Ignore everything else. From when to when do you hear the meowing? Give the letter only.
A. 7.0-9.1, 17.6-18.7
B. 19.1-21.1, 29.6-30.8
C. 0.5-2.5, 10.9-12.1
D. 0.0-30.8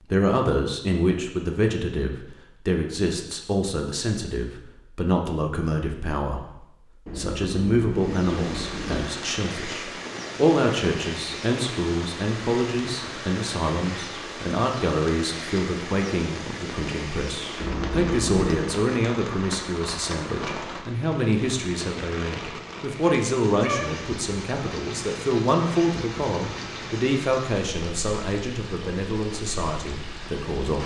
A.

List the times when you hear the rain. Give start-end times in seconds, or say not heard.
7.9-30.8.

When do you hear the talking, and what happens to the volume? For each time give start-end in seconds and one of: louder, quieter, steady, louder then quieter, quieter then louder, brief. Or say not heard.
0.0-30.8 steady.